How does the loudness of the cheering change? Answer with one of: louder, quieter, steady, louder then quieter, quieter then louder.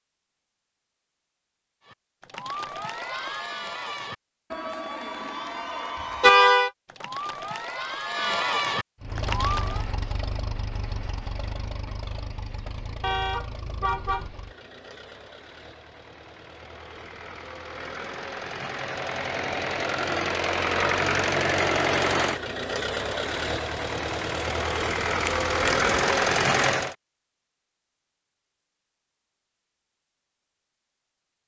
louder.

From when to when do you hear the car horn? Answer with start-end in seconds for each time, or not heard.
6.2-6.7, 13.0-14.3, 25.2-25.9.